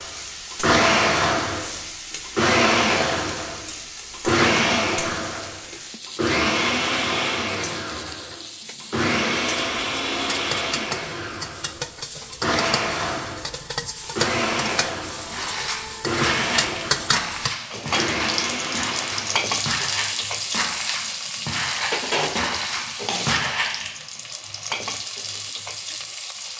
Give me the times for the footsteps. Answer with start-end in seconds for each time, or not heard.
15.3-23.9.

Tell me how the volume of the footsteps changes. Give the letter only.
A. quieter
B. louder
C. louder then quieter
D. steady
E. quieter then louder
D.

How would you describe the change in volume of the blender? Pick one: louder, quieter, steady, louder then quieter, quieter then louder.
quieter.